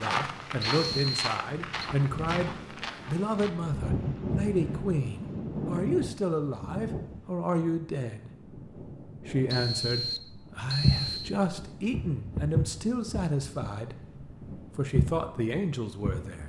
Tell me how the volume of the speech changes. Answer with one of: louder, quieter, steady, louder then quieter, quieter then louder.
steady.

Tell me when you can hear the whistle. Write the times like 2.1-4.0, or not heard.
0.6-1.9, 9.4-11.3.